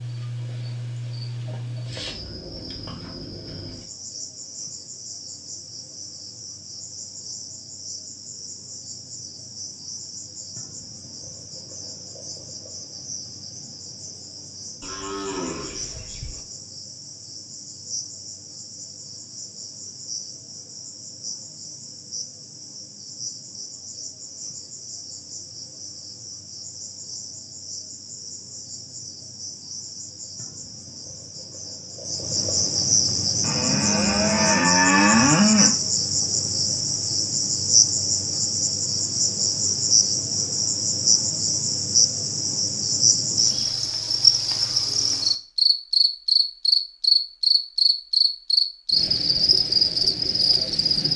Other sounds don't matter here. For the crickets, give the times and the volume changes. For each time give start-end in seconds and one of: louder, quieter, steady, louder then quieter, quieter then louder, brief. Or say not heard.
0.0-51.1 louder.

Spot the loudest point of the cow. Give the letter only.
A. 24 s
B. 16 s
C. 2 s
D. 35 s
D.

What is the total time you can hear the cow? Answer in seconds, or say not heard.
4 s.